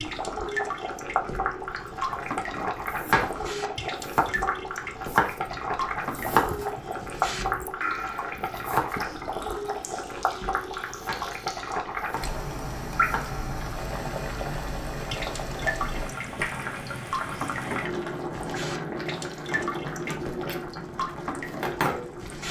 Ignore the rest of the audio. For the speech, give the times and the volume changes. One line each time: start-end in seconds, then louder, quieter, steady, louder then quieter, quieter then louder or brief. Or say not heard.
not heard.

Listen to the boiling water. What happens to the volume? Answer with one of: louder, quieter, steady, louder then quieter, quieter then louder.
steady.